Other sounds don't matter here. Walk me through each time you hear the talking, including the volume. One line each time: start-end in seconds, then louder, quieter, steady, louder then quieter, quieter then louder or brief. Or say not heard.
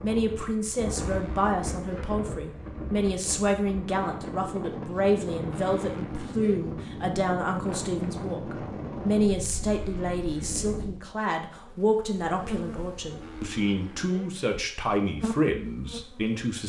0.0-16.6 steady.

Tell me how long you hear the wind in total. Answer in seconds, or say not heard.
11 s.